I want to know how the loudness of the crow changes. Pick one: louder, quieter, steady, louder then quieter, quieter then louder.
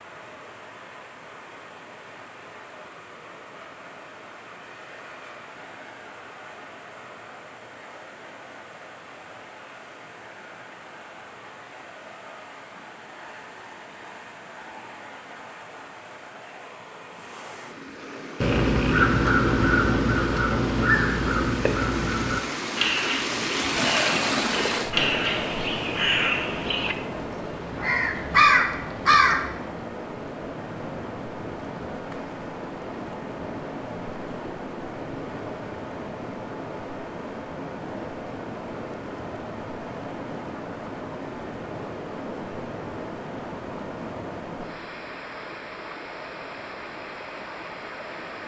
quieter then louder.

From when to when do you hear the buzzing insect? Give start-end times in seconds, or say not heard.
not heard.